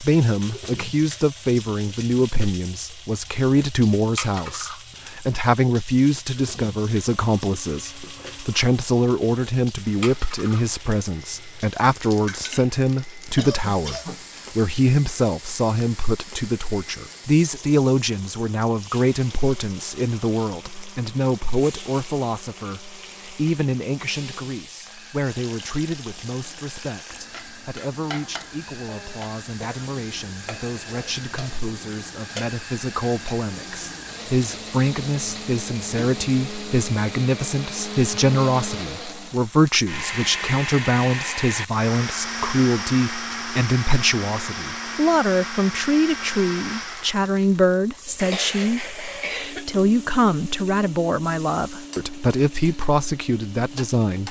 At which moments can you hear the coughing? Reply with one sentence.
You can hear the coughing from 13.3 to 14.2 s, from 28.9 to 29.9 s and from 48.0 to 49.7 s.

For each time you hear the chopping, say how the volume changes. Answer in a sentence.
The chopping can't be heard in this clip.